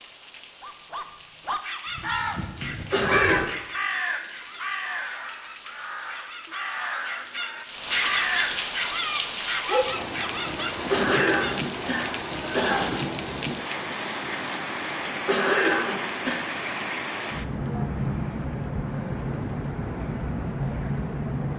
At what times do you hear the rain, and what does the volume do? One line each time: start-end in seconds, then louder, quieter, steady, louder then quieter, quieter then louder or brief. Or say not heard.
0.0-21.5 louder.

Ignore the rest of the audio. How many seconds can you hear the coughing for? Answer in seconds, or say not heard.
4 s.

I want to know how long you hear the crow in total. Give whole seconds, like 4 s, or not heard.
7 s.